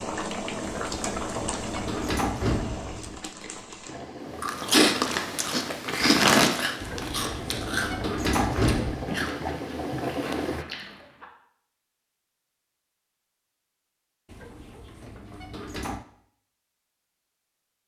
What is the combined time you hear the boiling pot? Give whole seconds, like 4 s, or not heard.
11 s.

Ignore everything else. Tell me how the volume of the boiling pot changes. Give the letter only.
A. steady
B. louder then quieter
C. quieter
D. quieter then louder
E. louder
D.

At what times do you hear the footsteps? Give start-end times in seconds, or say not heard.
not heard.